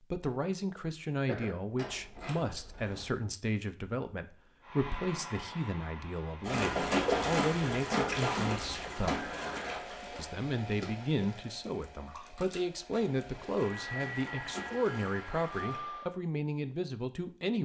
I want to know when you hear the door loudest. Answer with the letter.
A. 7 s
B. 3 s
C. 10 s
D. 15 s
A.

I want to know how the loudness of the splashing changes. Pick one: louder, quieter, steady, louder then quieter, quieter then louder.
quieter.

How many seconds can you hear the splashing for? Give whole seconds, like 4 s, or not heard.
9 s.